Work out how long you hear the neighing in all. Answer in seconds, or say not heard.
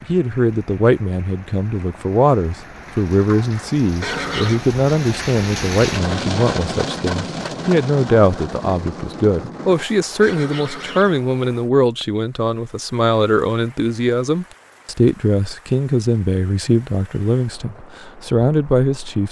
2 s.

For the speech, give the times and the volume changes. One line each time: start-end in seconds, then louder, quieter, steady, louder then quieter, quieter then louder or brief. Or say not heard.
0.0-19.2 steady.